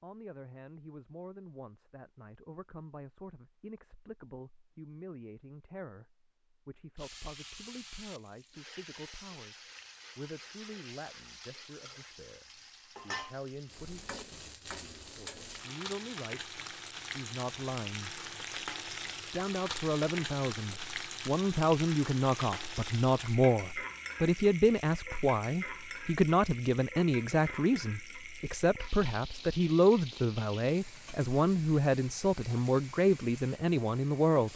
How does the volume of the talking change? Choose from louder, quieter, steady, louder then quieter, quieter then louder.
louder.